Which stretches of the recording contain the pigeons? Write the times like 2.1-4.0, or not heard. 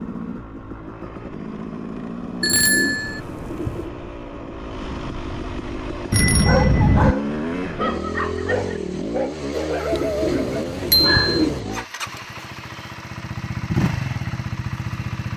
2.4-3.9, 9.9-11.6.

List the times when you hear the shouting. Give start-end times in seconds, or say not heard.
not heard.